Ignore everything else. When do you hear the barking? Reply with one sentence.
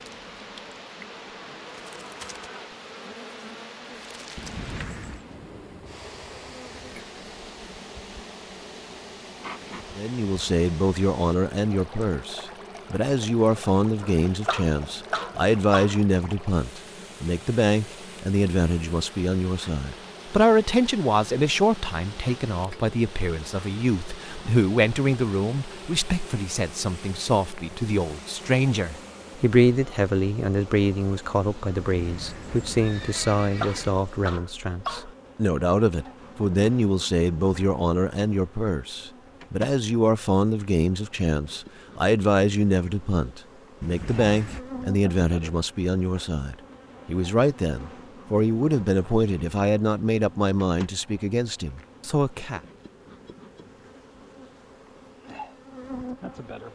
The barking can be heard from 14.0 to 16.0 s and from 33.4 to 35.1 s.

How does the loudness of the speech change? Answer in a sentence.
The loudness of the speech stays about the same.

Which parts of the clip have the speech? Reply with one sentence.
The speech can be heard from 9.9 to 52.6 s.